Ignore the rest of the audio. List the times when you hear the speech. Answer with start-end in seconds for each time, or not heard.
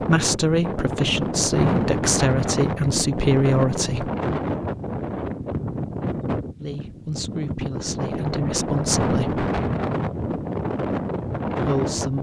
0.0-4.1, 6.6-9.4, 11.6-12.1.